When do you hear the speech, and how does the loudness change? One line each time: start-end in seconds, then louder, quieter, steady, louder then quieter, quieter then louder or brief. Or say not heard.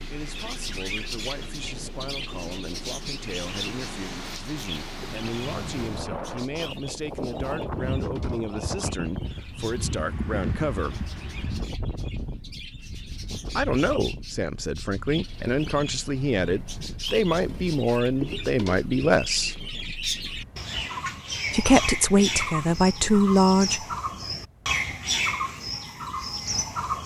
0.1-11.1 louder
13.6-19.6 louder
21.5-23.9 brief.